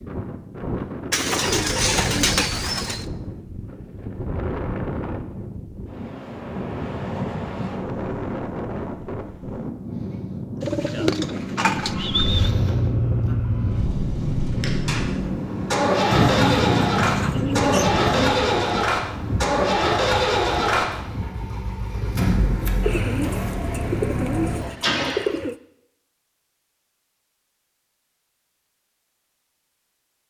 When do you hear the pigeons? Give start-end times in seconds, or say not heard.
1.1-3.0, 10.6-12.5, 16.1-18.4, 22.8-25.6.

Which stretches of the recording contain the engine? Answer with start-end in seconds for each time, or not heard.
11.8-25.2.